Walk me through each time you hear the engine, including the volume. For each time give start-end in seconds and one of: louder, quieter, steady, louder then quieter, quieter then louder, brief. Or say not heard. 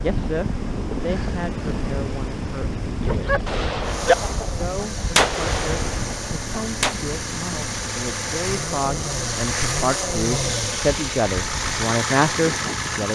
3.8-13.1 louder.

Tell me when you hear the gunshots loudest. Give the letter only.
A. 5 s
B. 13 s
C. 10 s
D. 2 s
A.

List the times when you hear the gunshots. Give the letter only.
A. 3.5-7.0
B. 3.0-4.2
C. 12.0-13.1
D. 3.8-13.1
A.